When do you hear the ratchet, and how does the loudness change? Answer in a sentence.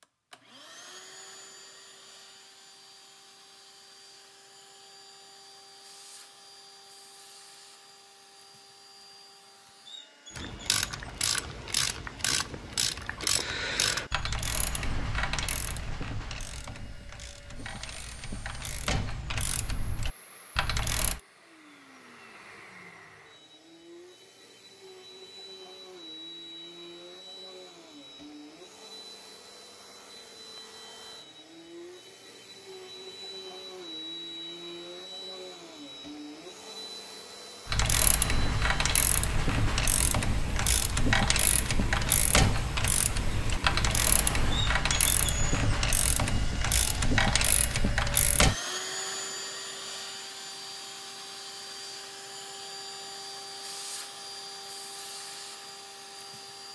You can hear the ratchet from 10.3 to 21.2 s, getting quieter then louder; and from 37.6 to 48.5 s, at a steady volume.